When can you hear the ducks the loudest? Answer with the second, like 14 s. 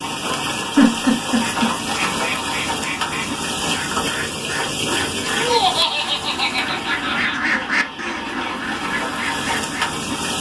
8 s.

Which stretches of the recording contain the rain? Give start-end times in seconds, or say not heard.
0.0-10.3.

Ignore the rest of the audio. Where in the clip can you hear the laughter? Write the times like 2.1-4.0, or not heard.
0.8-1.7, 5.3-7.3.